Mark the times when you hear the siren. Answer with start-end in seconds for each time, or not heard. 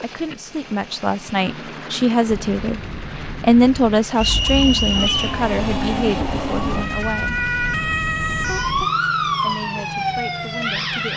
4.2-11.1.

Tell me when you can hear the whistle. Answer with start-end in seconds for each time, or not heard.
4.2-5.4.